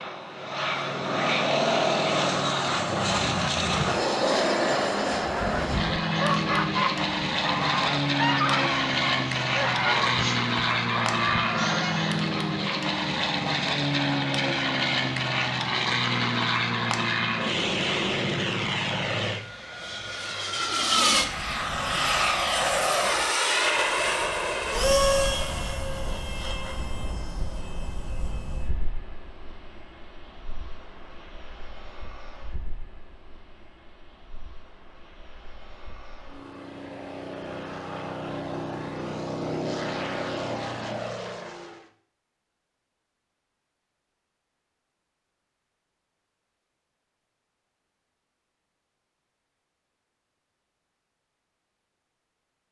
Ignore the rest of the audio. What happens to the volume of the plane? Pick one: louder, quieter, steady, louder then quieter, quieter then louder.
quieter.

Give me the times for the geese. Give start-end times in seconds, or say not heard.
5.2-12.2.